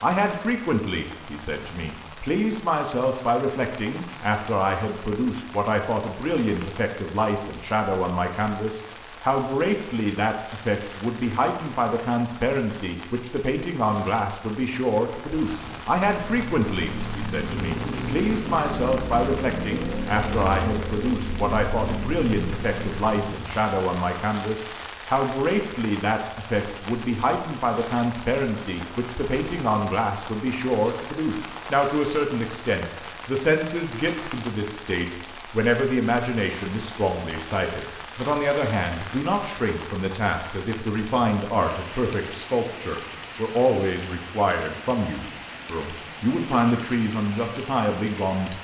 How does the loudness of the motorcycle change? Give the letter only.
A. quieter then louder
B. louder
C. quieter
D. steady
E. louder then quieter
D.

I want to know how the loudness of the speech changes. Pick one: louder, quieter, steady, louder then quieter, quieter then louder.
steady.